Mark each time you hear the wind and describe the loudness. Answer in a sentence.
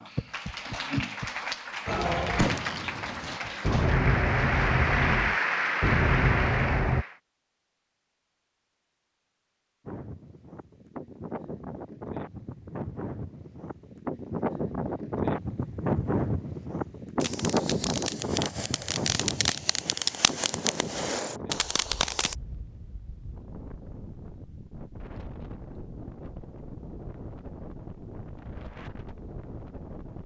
The wind can be heard from 9.8 to 30.2 s, getting louder then quieter.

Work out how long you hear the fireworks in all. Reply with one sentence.
The fireworks can be heard for 10 seconds in total.